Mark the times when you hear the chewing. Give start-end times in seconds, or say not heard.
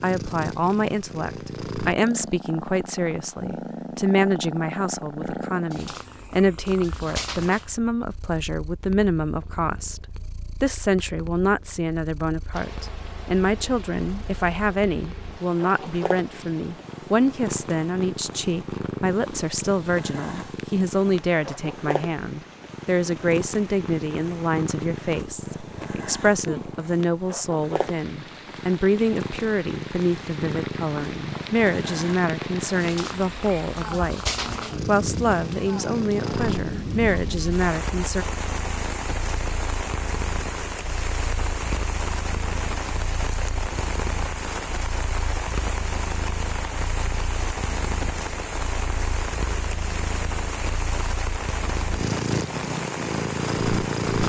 not heard.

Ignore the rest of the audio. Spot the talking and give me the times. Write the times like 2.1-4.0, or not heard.
0.0-34.2, 34.9-38.2.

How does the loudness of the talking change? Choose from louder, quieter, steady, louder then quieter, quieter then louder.
steady.